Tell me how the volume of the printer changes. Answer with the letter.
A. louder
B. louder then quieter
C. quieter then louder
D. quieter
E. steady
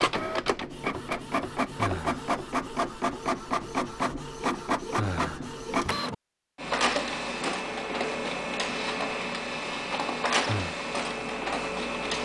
E.